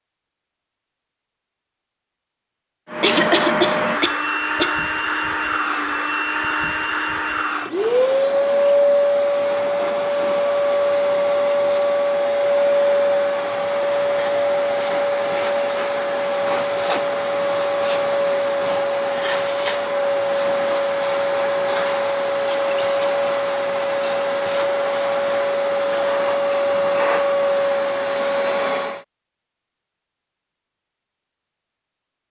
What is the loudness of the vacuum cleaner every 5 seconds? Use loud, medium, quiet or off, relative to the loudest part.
loud, loud, loud, loud, loud, loud, off.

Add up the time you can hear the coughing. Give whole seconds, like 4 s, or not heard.
2 s.